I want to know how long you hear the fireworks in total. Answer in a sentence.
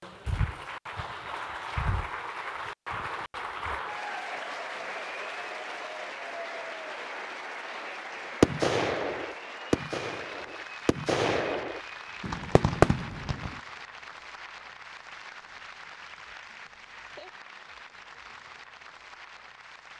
You can hear the fireworks for 5 seconds altogether.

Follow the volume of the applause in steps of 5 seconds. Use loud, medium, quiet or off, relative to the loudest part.
loud, loud, medium, medium.